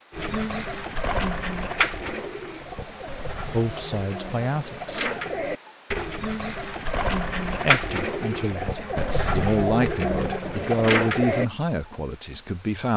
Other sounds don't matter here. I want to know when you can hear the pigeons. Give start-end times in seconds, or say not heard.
0.1-11.4.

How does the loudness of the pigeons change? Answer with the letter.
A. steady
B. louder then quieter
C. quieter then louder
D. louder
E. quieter
C.